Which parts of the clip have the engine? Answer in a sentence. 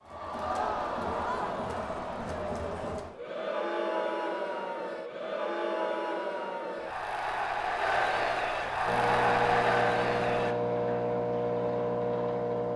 The engine can be heard from 8.8 to 12.7 s.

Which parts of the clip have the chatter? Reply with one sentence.
The chatter can be heard from 0.0 to 10.6 s.